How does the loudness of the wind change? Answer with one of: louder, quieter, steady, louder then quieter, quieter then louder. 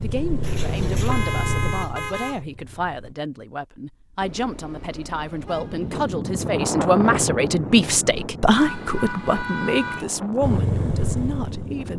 quieter.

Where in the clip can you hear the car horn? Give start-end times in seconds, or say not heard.
0.4-2.4, 4.2-6.1, 8.5-10.1.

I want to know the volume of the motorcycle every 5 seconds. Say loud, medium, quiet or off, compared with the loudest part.
loud, off, loud.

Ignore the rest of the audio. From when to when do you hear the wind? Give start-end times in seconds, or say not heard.
5.3-11.9.